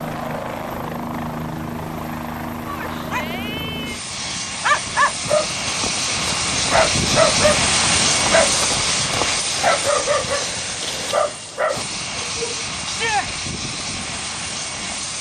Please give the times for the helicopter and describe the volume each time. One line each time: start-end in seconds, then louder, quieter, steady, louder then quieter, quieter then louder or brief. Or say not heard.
0.0-15.1 louder then quieter.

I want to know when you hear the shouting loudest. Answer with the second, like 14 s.
13 s.